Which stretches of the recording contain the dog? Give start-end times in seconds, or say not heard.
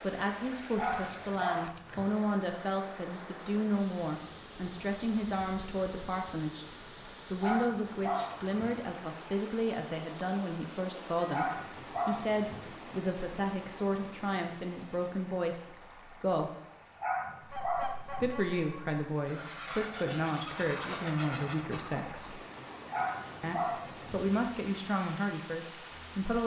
0.8-2.1, 7.4-8.8, 11.3-12.4, 17.0-18.4, 22.9-24.3.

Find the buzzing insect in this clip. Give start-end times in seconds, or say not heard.
not heard.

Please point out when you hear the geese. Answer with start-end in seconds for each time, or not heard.
17.4-22.0.